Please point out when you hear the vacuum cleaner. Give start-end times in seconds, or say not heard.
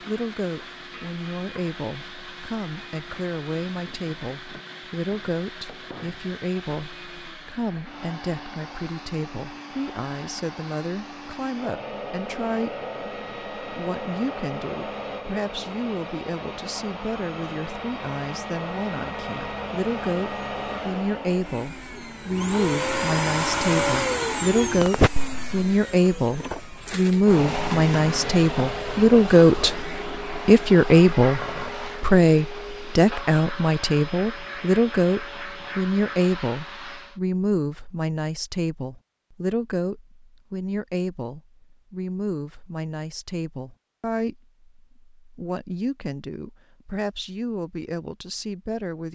0.0-37.2.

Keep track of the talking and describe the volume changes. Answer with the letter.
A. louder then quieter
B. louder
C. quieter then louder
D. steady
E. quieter
A.